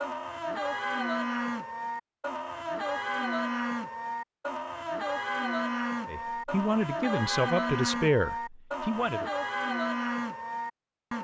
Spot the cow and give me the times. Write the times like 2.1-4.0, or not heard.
0.0-11.1.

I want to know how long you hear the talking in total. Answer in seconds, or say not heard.
3 s.